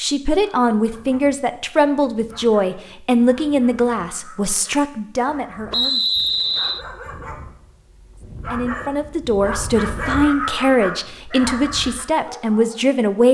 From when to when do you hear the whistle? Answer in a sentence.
You can hear the whistle from 5.7 to 6.8 s.